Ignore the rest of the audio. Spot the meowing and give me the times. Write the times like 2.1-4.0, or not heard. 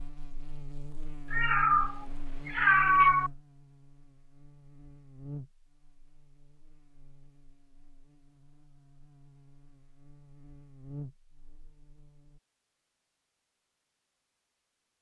1.3-3.3.